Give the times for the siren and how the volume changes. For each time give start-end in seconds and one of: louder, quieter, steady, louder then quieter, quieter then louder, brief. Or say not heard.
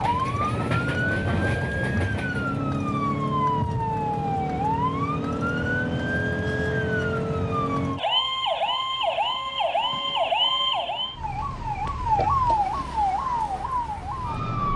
0.0-14.7 steady.